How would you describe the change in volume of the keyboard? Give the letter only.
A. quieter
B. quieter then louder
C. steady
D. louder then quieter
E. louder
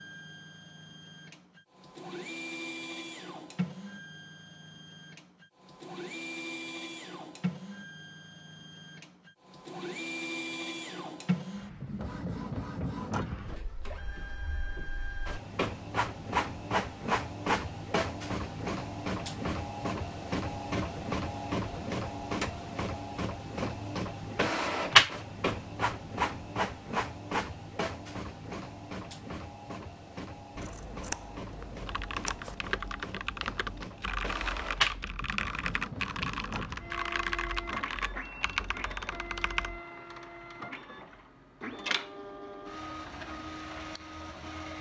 C.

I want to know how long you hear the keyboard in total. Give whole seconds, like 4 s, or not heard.
8 s.